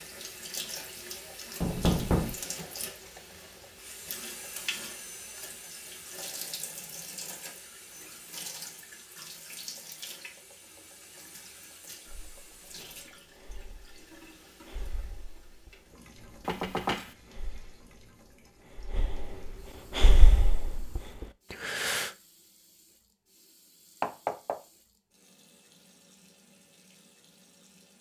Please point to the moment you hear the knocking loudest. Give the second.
2 s.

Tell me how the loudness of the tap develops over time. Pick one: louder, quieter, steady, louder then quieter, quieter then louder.
quieter.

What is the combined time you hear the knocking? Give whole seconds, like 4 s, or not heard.
2 s.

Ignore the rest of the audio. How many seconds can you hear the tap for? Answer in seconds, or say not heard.
28 s.